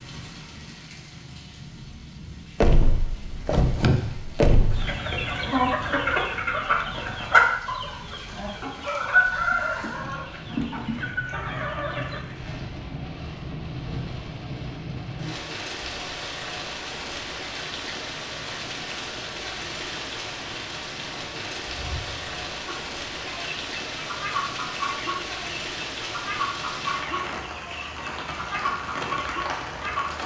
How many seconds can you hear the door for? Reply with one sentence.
You can hear the door for 3 seconds altogether.